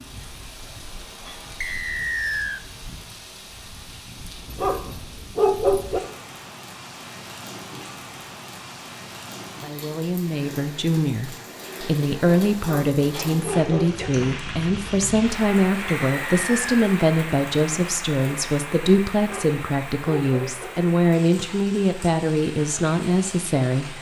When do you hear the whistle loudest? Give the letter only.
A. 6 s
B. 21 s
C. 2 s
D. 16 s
C.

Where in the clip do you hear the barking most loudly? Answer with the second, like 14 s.
6 s.